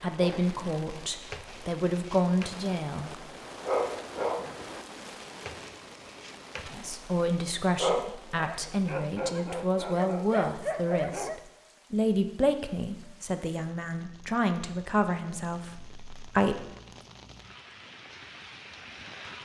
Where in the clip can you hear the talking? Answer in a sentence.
The talking can be heard from 0.0 to 3.1 s and from 6.7 to 16.7 s.